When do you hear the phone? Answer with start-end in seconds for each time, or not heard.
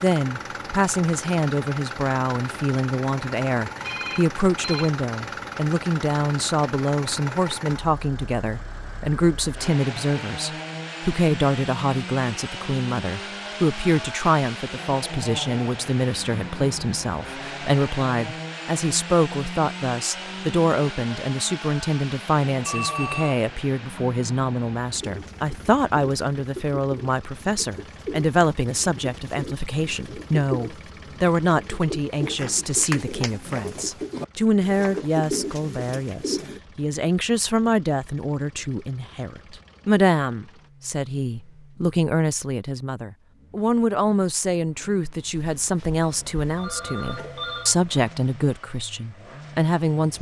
3.8-4.9, 22.6-23.4, 45.4-47.8.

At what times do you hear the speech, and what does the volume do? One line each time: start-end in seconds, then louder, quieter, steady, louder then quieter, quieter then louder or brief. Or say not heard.
0.0-50.1 steady.